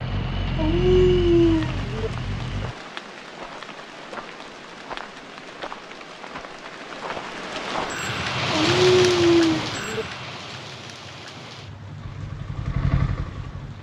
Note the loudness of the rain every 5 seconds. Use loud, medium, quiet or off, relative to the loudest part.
medium, loud, medium.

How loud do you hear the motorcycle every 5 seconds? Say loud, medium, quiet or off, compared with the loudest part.
loud, off, loud.